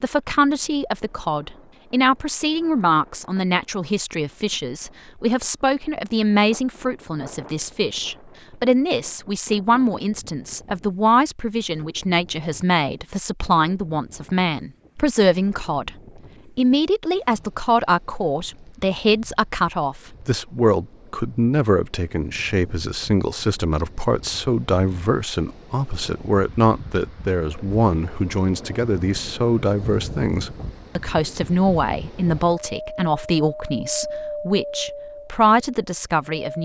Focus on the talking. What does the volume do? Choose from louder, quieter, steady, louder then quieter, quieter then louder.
steady.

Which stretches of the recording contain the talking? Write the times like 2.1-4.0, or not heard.
0.0-15.9, 16.6-36.6.